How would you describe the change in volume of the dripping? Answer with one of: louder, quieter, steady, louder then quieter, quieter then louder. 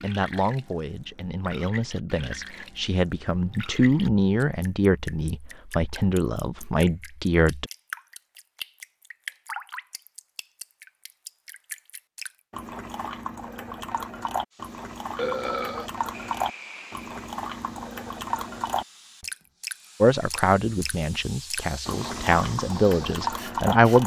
louder.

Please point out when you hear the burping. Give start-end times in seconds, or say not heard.
15.2-15.9.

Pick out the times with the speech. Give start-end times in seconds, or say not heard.
0.0-7.7, 20.0-24.0.